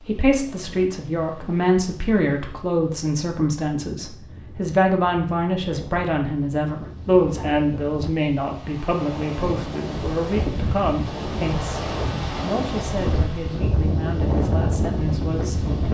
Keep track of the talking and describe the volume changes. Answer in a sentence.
The volume of the talking goes down.